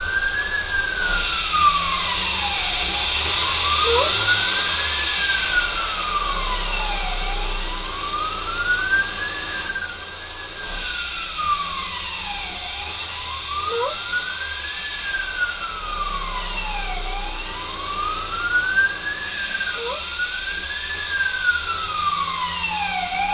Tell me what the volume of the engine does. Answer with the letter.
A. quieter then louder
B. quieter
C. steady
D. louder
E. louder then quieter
B.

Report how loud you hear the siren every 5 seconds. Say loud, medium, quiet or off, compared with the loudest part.
loud, loud, medium, loud, loud.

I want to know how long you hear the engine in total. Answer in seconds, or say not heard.
23 s.